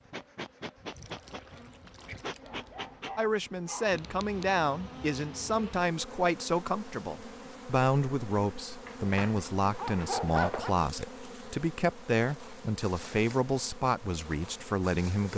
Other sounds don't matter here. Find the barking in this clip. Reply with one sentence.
The barking can be heard from 2.4 to 4.0 s and from 8.8 to 10.7 s.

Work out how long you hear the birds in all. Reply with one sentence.
You can't hear the birds here.